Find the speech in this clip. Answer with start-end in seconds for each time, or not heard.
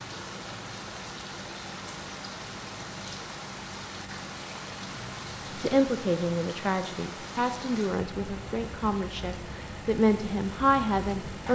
5.6-11.5.